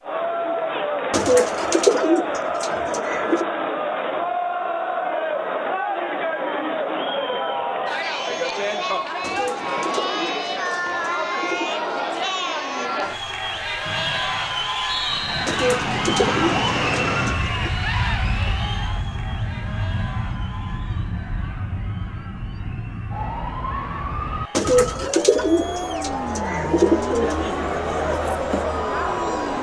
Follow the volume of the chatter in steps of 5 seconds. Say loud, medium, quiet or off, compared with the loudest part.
loud, loud, loud, loud, quiet, loud.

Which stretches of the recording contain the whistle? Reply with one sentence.
You can hear the whistle from 13.8 to 15.4 s.